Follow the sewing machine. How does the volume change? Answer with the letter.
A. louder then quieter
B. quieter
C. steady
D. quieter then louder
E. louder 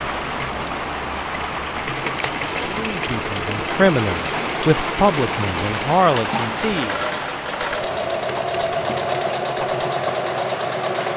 E.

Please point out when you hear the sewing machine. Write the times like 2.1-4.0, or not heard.
0.1-11.1.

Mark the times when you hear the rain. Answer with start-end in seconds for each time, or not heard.
0.0-11.1.